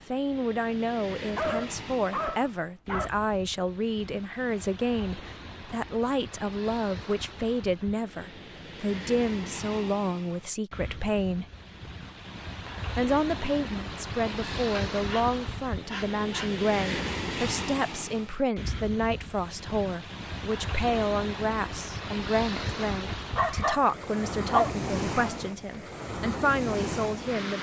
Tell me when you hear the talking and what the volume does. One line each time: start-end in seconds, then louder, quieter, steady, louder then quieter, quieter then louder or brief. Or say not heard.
0.1-11.4 steady
12.9-27.5 steady.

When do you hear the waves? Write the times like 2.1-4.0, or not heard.
0.0-27.5.